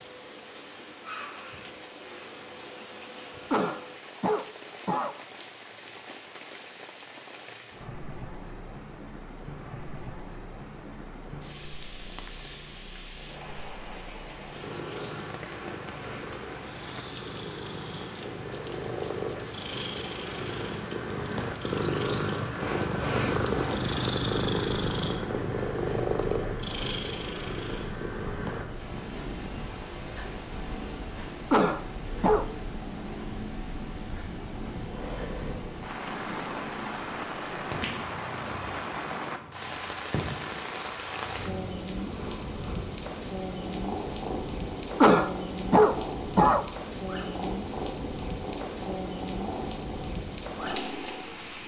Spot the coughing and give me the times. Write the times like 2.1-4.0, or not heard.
3.5-5.2, 31.5-32.5, 45.0-46.6.